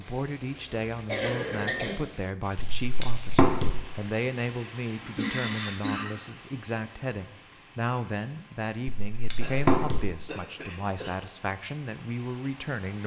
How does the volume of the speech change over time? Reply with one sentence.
The loudness of the speech stays about the same.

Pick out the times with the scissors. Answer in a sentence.
You can hear the scissors from 2.5 to 3.7 s and from 8.9 to 10.0 s.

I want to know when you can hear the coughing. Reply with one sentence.
You can hear the coughing from 1.1 to 1.9 s, from 4.5 to 6.1 s and from 9.3 to 11.1 s.